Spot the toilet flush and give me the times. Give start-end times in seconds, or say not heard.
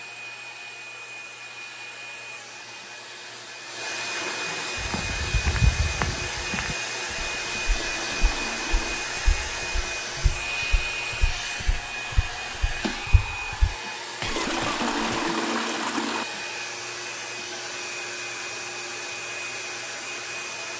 4.1-4.8, 7.7-9.1, 14.2-16.2.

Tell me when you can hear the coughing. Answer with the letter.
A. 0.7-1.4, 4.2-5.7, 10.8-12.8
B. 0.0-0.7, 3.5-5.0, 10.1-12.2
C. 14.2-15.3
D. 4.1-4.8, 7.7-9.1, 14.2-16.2
C.